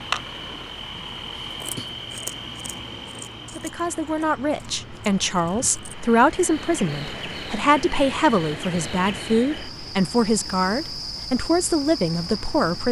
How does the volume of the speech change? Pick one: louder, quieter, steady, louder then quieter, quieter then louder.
steady.